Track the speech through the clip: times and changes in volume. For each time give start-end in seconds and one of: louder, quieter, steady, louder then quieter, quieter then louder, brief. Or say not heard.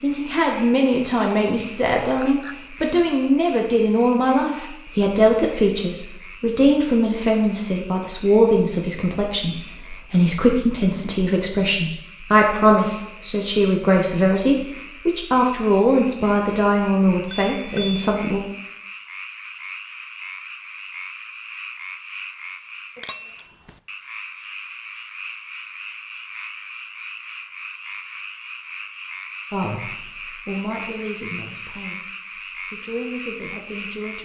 0.0-18.4 steady
29.5-34.1 quieter then louder.